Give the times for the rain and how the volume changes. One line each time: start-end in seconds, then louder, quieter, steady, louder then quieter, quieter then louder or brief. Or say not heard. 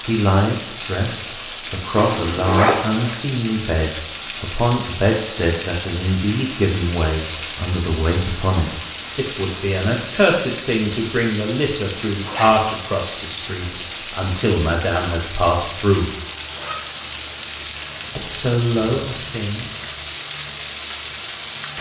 0.0-21.7 steady.